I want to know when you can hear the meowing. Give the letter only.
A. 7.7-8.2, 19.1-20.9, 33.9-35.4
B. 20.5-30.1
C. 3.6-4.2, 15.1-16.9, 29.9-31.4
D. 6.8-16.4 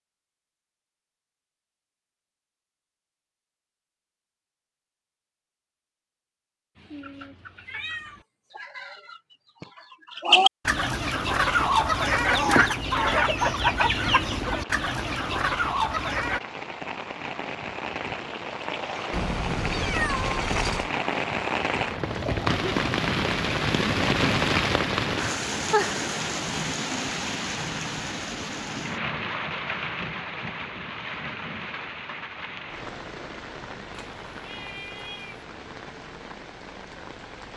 A.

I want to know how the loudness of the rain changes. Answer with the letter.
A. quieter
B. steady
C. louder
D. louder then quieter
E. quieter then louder
D.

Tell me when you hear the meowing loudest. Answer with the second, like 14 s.
20 s.